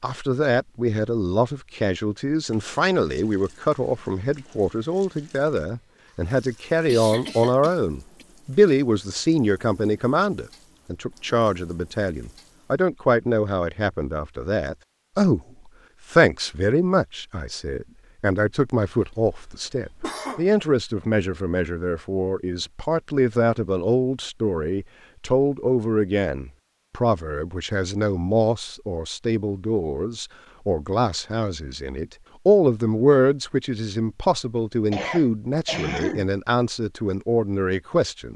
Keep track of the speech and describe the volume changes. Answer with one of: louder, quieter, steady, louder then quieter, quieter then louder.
steady.